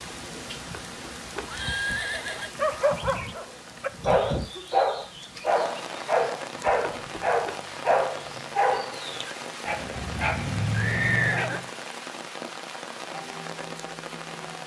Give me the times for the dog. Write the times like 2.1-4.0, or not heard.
2.5-11.7.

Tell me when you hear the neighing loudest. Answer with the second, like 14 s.
11 s.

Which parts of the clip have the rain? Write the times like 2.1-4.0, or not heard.
0.0-14.6.